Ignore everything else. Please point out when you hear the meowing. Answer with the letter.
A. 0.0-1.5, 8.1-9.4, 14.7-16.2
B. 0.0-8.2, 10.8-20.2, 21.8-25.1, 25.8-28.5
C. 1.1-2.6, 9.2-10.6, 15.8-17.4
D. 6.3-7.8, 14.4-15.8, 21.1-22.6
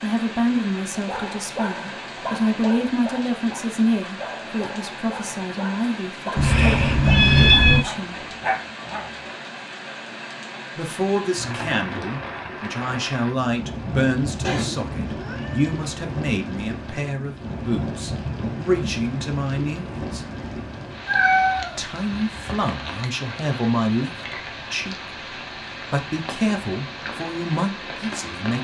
D.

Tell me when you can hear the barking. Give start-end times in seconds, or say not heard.
1.0-9.2.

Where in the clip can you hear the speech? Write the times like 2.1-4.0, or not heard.
0.0-8.2, 10.8-20.2, 21.8-25.1, 25.8-28.5.